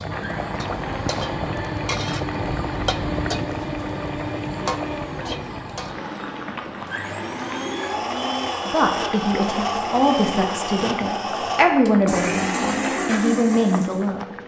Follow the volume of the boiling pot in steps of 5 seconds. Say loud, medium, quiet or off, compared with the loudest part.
loud, medium, medium.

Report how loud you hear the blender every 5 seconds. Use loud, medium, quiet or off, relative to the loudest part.
medium, loud, loud.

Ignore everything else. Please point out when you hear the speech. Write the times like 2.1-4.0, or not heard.
8.7-14.2.